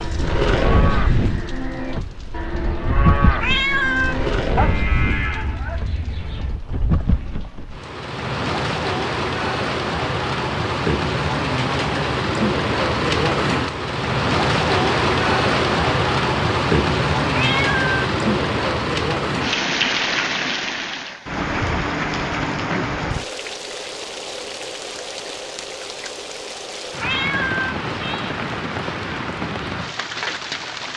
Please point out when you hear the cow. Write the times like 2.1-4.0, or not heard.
0.0-6.6.